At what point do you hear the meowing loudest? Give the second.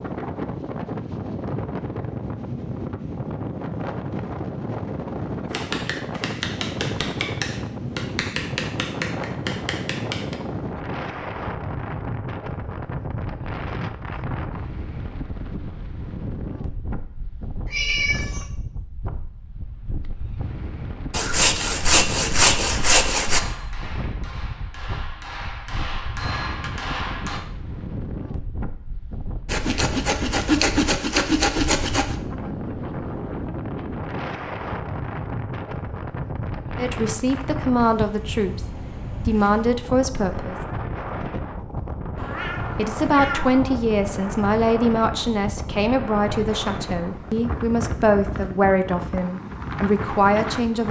18 s.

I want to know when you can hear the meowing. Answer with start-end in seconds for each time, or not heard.
17.6-18.4, 42.1-43.9.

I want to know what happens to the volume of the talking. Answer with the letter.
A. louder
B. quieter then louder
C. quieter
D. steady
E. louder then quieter
D.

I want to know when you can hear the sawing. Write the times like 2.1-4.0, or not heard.
21.1-23.4, 29.4-32.1.